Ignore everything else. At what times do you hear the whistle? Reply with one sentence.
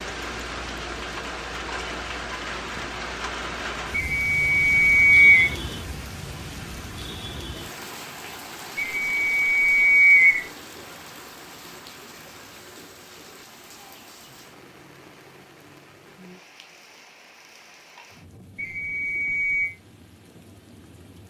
The whistle can be heard from 3.9 to 5.5 s, from 8.8 to 10.4 s and from 18.6 to 19.7 s.